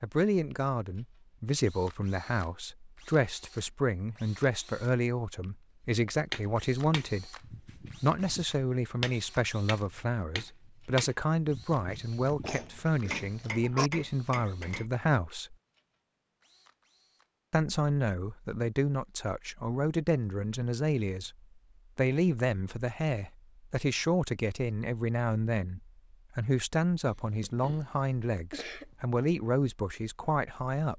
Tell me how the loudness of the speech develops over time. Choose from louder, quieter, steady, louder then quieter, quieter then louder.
steady.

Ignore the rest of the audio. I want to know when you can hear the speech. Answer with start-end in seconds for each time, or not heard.
0.0-7.3, 8.0-15.6, 17.5-21.4, 21.9-30.9.